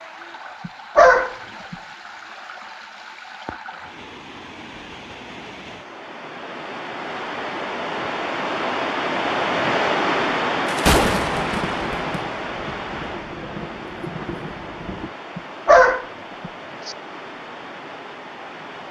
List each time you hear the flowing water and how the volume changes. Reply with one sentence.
The flowing water can be heard from 0.0 to 18.8 s, getting louder then quieter.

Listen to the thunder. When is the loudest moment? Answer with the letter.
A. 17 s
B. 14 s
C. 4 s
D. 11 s
D.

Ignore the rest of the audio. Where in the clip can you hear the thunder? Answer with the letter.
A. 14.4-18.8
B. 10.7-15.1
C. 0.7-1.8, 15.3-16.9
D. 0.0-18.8
B.